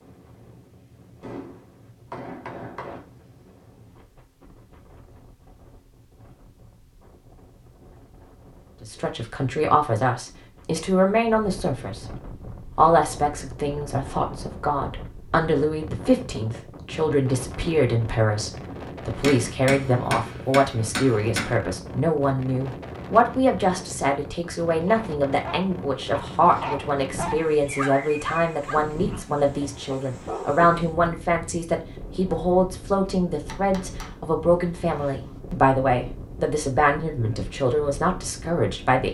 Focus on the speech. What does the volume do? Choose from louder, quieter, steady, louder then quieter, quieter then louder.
steady.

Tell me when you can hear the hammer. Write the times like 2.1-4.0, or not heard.
1.2-3.0, 19.2-21.6, 33.5-35.4.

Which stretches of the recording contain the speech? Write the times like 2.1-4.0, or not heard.
8.8-12.1, 12.8-39.0.